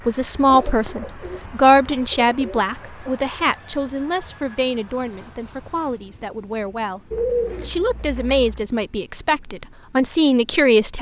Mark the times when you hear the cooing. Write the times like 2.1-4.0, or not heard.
0.5-3.5, 7.1-8.7.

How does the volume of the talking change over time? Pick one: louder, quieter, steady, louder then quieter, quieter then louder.
quieter then louder.